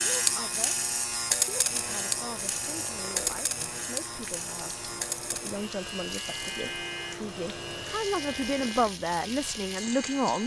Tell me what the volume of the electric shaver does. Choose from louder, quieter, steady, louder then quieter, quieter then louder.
quieter.